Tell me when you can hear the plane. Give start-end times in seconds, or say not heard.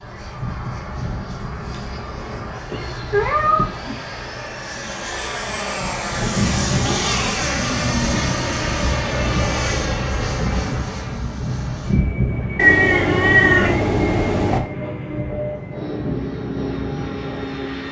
0.0-17.8.